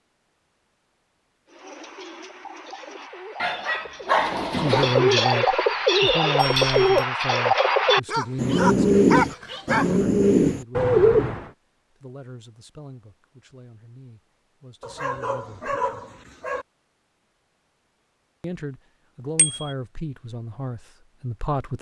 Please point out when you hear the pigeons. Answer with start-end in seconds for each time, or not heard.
1.4-11.5.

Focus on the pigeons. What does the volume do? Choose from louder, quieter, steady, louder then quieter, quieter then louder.
louder.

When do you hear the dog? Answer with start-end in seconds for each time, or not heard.
3.4-5.0, 8.1-10.0, 14.8-16.6.